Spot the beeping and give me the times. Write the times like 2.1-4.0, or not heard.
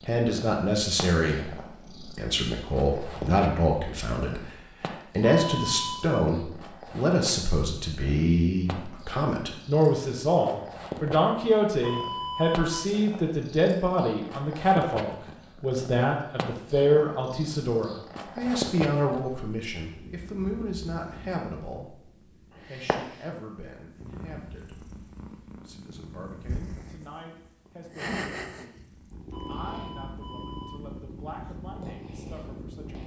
5.2-6.2, 11.8-12.9, 29.3-30.8.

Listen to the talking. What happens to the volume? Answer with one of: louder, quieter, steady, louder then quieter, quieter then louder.
quieter.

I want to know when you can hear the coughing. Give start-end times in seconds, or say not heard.
not heard.